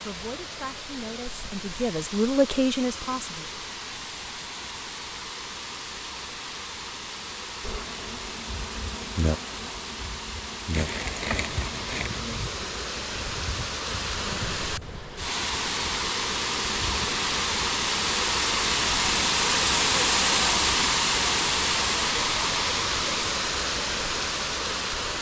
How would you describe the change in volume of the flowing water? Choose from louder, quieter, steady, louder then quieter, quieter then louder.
louder.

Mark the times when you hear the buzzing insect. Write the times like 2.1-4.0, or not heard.
7.6-17.7.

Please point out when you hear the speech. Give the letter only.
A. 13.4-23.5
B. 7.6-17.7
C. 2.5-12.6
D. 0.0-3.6
D.